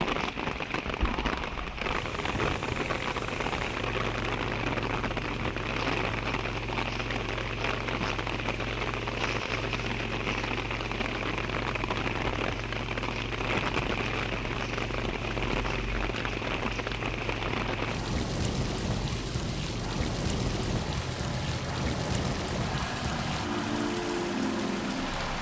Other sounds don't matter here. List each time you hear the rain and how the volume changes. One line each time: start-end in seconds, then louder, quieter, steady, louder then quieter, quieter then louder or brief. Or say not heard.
0.0-25.3 steady.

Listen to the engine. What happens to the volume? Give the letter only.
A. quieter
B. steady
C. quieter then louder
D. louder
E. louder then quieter
B.